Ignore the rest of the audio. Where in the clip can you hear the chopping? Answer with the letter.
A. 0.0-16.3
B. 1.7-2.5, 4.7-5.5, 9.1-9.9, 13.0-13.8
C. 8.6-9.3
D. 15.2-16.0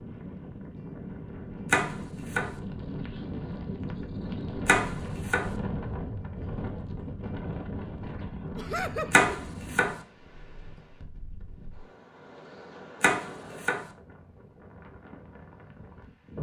B.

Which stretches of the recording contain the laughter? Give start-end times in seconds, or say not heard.
8.6-9.3.